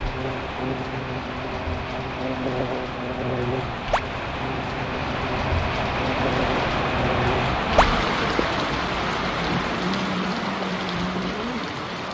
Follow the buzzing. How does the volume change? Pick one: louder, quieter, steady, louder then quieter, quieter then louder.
steady.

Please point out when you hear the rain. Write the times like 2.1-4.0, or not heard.
0.0-12.0.